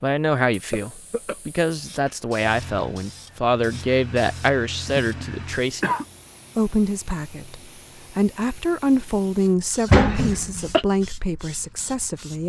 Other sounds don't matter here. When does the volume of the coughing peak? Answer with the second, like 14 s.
10 s.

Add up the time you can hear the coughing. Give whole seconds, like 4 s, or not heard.
3 s.